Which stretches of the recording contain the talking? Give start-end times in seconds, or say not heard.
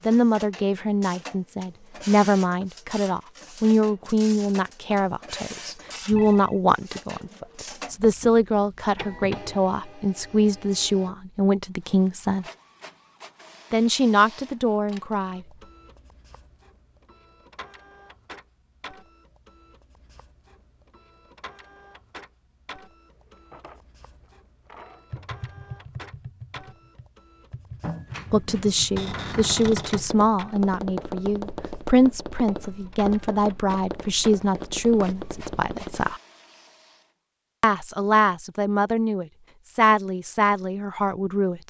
0.1-12.4, 13.7-15.4, 28.3-36.2, 37.6-41.6.